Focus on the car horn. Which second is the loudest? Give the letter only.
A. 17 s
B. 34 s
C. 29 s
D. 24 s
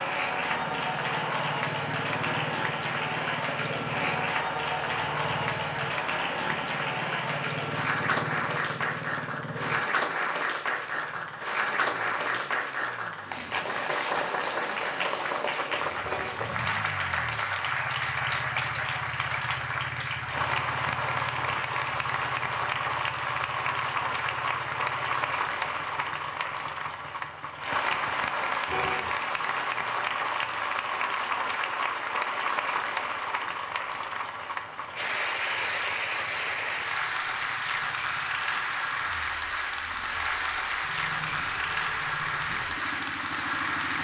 C.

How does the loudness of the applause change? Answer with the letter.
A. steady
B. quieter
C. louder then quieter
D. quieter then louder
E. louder
A.